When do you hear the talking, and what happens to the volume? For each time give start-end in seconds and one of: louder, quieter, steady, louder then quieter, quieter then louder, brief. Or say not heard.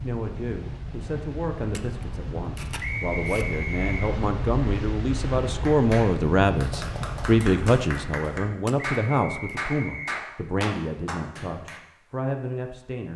0.0-13.1 louder then quieter.